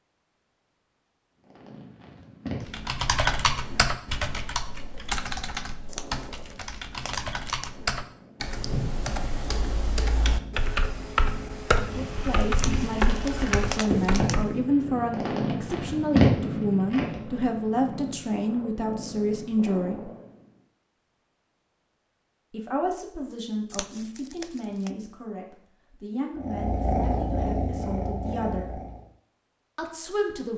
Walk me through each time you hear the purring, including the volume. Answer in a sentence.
The purring can be heard from 1.4 to 20.5 s, getting louder then quieter; and briefly from 26.4 to 29.1 s.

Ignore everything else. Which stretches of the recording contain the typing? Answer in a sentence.
You can hear the typing from 2.6 to 14.6 s.